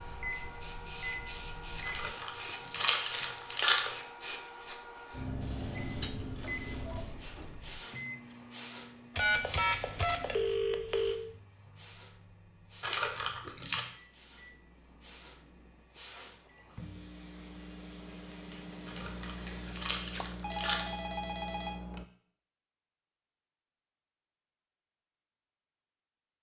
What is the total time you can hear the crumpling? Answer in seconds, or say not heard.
5 s.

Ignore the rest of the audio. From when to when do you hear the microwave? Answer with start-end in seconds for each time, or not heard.
0.0-2.1, 5.8-22.1.